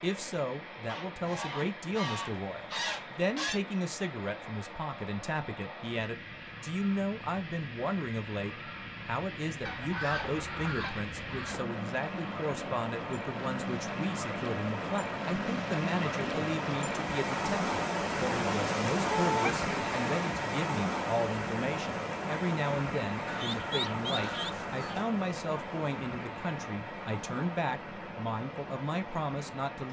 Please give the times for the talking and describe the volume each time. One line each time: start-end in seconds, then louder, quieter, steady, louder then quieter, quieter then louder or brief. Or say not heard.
0.0-29.8 steady.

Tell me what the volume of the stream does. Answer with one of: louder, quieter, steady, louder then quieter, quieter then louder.
louder then quieter.